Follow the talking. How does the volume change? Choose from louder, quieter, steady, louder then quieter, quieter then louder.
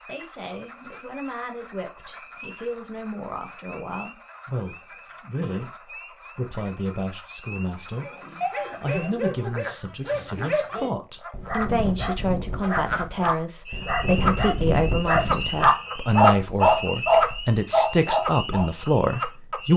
louder.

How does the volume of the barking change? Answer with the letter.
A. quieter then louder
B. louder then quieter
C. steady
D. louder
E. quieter
D.